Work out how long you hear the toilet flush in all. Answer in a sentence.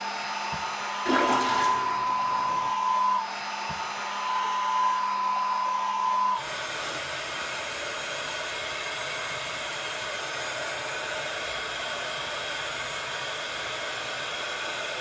You can hear the toilet flush for 2 seconds altogether.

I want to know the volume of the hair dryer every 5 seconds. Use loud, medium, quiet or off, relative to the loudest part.
loud, loud, medium.